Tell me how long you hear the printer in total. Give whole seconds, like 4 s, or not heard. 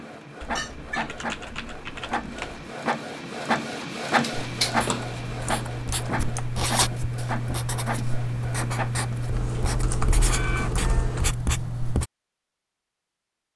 11 s.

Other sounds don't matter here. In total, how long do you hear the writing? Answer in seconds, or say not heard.
8 s.